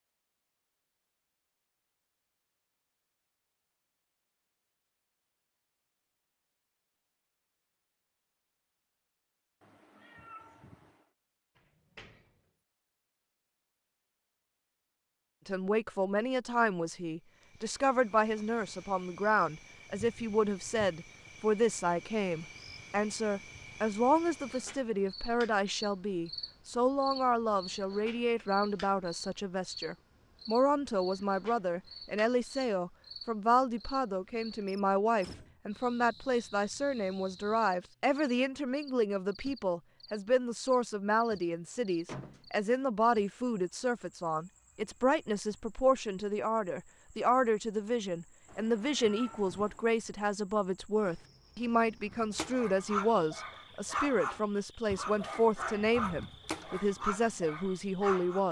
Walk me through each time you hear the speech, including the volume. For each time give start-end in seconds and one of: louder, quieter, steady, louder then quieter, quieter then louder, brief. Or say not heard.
15.4-58.4 steady.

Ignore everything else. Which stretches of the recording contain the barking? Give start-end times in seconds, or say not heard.
52.0-58.4.